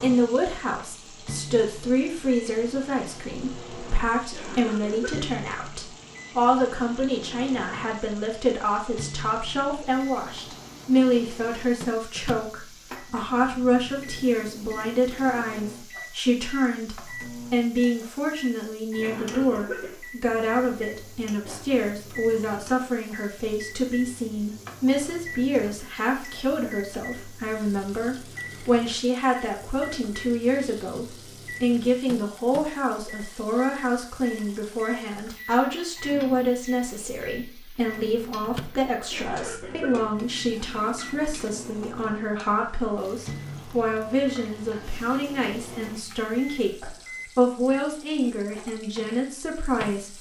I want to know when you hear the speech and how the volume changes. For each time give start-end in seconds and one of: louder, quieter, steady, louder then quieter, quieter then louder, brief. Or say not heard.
0.0-50.1 steady.